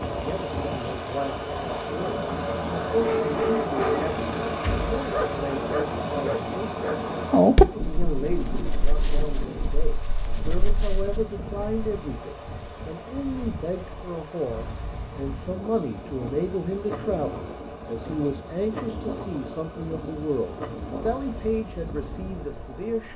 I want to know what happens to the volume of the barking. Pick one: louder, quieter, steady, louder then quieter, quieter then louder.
louder then quieter.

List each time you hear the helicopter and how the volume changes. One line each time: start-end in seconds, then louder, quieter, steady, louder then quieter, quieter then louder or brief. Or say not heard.
0.0-23.1 quieter.